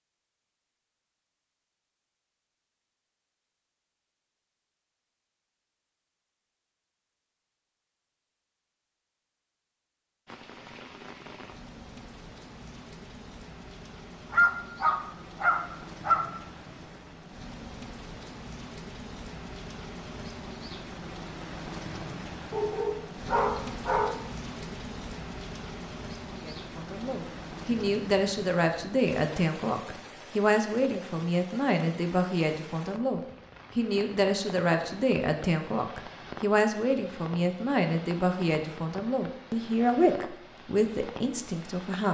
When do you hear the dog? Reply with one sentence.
The dog can be heard from 14.3 to 16.2 s and from 22.5 to 24.1 s.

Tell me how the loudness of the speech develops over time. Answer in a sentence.
The volume of the speech stays about the same.